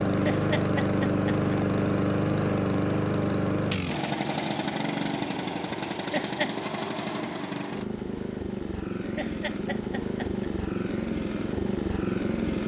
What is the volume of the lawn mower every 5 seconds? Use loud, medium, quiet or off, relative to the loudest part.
loud, medium, loud.